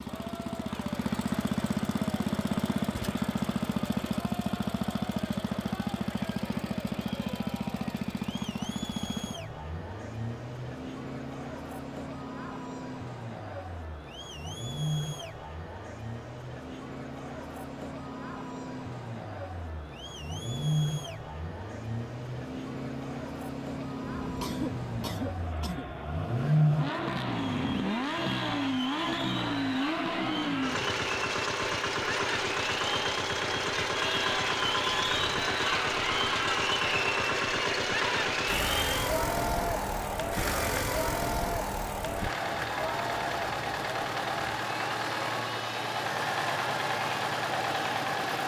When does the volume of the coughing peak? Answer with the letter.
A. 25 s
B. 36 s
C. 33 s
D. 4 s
A.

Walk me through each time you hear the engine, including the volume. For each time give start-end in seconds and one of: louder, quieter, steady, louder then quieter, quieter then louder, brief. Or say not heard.
0.0-48.4 quieter then louder.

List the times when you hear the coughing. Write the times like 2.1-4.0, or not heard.
24.2-25.9.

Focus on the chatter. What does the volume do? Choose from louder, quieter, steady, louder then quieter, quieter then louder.
louder.